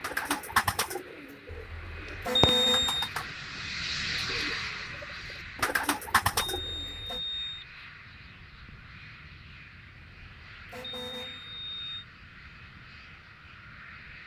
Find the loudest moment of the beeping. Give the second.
3 s.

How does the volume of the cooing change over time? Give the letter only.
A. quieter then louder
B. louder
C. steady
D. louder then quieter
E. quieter
A.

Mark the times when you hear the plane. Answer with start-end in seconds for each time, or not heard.
0.0-14.2.